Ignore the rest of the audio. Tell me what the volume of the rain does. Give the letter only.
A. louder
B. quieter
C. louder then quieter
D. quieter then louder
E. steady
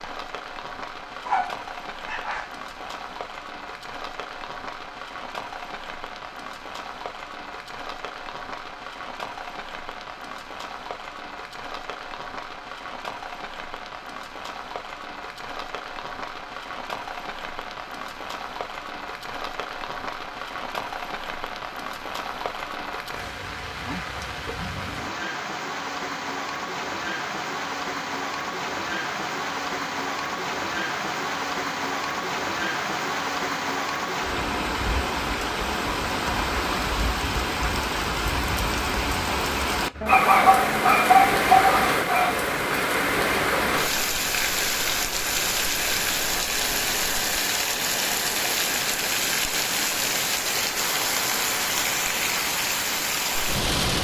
A.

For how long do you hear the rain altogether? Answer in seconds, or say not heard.
54 s.